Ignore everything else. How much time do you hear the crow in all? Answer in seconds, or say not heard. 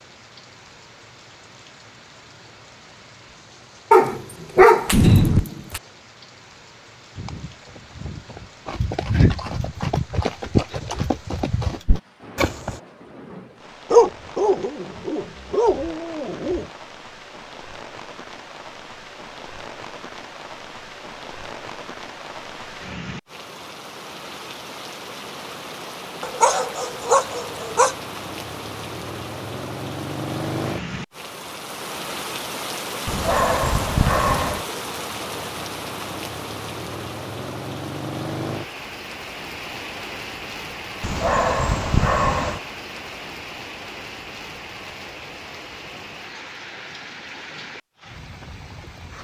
not heard.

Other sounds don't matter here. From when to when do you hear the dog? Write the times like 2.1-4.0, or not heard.
3.9-5.8, 13.9-16.6, 26.2-27.9, 33.0-34.6, 41.0-42.6.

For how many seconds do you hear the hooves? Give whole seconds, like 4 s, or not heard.
6 s.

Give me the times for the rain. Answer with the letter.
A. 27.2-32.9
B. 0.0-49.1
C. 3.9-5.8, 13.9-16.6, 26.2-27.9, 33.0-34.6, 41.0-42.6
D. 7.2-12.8
B.